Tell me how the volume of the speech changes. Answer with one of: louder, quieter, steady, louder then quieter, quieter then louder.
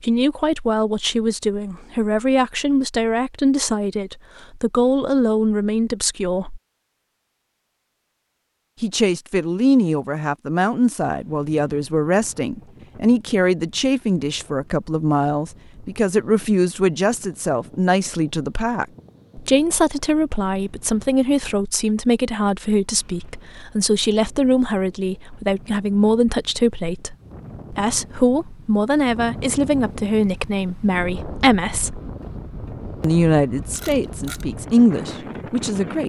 steady.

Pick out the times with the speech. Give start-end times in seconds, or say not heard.
0.0-6.6, 8.8-32.0, 33.0-36.0.